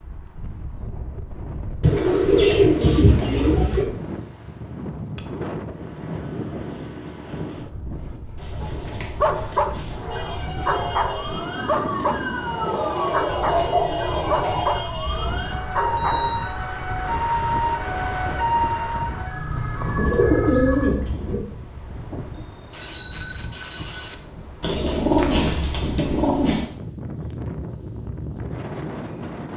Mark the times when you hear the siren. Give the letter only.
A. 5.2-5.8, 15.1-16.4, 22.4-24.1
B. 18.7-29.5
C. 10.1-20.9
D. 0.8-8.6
C.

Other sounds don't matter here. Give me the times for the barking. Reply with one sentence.
The barking can be heard from 8.6 to 16.4 s.